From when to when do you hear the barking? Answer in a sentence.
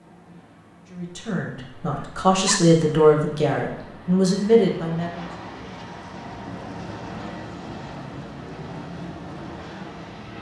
The barking can be heard from 2.0 to 2.6 s.